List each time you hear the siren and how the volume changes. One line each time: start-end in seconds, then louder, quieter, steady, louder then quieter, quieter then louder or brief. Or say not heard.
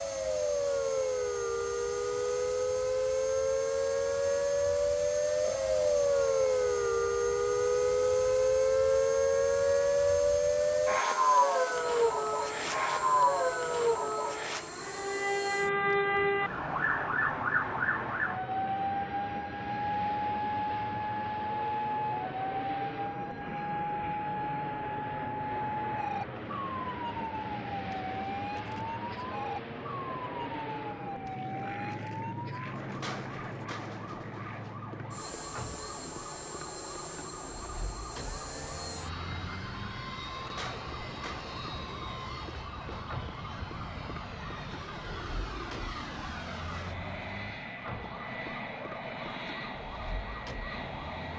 0.0-51.3 quieter.